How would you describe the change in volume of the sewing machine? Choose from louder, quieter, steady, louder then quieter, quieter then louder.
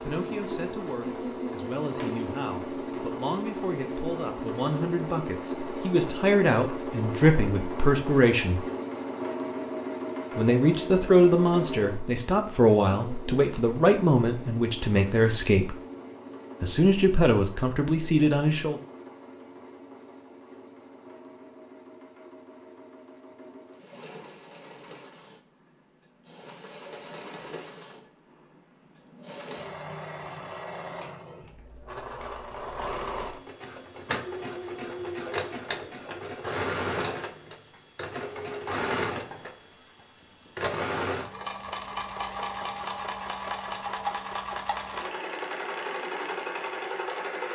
quieter then louder.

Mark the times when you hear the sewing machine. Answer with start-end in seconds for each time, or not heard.
0.0-47.5.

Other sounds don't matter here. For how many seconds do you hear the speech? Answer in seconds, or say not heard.
16 s.